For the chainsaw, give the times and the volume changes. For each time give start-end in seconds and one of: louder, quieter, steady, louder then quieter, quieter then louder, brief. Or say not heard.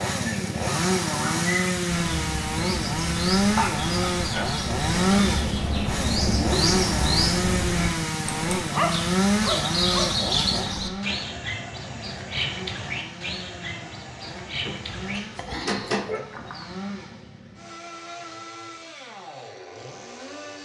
0.0-20.6 quieter.